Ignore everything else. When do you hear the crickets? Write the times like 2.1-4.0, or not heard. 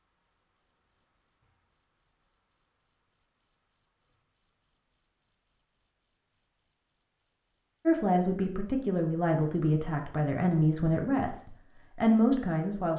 0.2-12.9.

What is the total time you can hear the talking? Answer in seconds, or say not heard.
5 s.